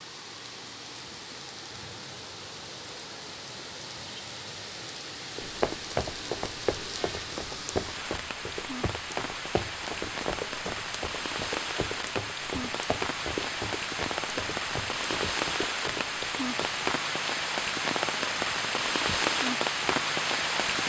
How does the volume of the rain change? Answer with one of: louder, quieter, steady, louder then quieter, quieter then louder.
louder.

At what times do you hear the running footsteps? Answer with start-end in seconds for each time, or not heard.
5.3-16.9.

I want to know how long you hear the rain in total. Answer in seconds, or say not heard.
21 s.